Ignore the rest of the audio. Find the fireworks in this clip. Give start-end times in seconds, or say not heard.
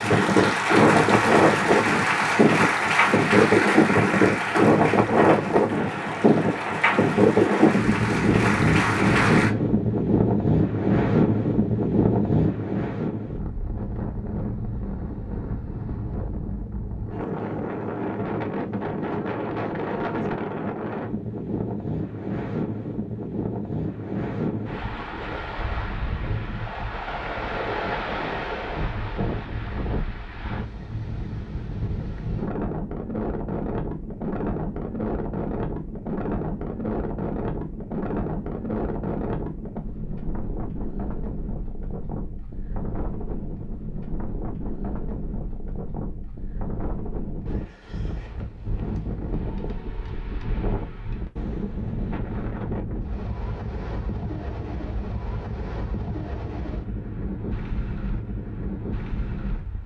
not heard.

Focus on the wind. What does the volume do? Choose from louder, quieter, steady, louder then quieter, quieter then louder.
quieter.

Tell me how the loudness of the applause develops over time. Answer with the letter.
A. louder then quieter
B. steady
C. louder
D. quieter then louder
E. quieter
D.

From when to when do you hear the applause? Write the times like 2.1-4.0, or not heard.
0.0-9.6.